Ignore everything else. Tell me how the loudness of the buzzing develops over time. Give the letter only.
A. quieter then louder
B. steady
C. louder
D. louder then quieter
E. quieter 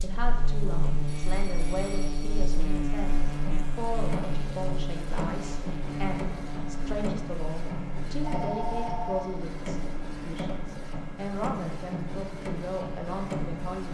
E.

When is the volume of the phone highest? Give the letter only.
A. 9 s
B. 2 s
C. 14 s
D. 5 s
A.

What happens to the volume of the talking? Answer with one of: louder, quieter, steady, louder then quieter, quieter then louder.
steady.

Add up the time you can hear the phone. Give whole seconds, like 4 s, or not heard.
3 s.